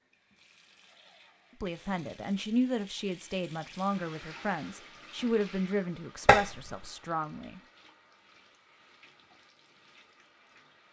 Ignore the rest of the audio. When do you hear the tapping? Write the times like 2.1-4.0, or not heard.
6.2-6.8.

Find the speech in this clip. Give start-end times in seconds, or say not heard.
1.6-7.6.